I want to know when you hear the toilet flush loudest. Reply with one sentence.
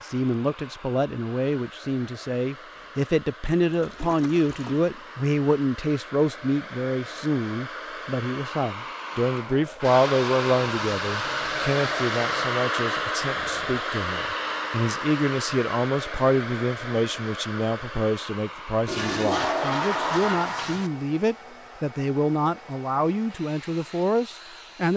The volume of the toilet flush peaks at 20 seconds.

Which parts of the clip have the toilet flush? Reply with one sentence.
You can hear the toilet flush from 3.6 to 4.8 s, from 9.8 to 12.6 s and from 18.9 to 20.9 s.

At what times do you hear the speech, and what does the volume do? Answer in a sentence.
The speech can be heard from 0.0 to 24.9 s, at a steady volume.